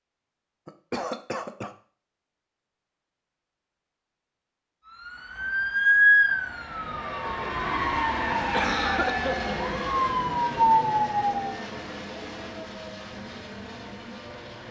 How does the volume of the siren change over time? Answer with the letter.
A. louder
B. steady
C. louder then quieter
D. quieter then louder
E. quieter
D.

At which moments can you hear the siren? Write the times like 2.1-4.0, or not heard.
4.9-11.6.